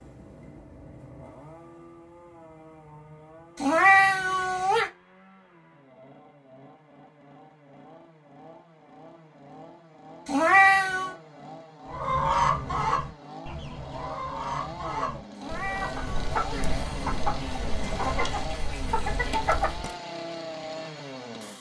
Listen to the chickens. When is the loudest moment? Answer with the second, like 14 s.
12 s.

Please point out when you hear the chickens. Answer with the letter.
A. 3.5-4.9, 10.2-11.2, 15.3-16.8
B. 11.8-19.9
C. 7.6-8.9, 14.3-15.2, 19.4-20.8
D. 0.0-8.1
B.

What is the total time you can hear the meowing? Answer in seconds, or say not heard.
4 s.